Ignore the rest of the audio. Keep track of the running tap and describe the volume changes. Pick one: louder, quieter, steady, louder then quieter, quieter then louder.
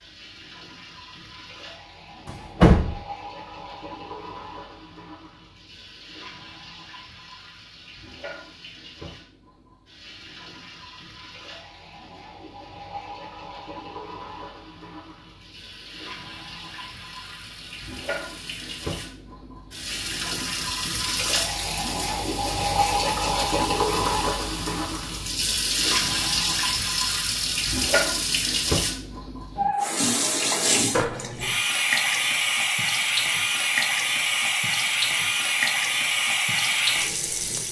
louder.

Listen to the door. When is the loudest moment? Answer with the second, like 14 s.
3 s.